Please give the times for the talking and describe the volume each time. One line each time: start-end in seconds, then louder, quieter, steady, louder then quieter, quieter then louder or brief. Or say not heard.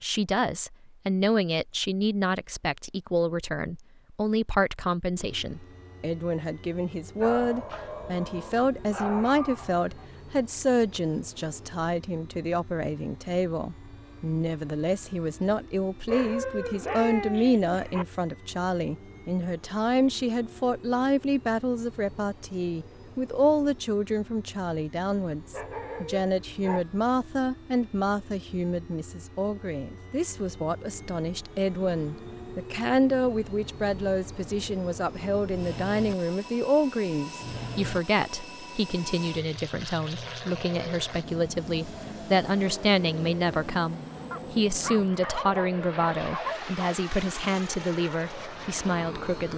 0.0-49.5 steady.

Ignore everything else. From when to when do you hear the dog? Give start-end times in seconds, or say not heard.
7.2-10.1, 16.1-18.1, 25.4-26.9, 44.3-47.0.